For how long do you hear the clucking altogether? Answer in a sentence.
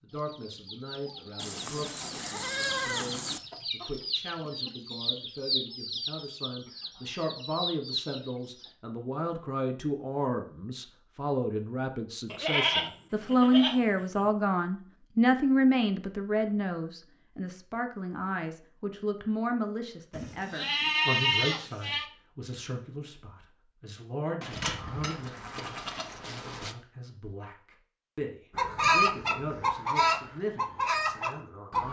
The clucking can be heard for 12 seconds in total.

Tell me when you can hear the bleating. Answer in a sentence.
You can hear the bleating from 1.4 to 3.4 s, from 12.3 to 14.2 s, from 20.1 to 22.1 s and from 24.4 to 26.8 s.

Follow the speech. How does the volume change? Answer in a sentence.
The loudness of the speech goes up, then down.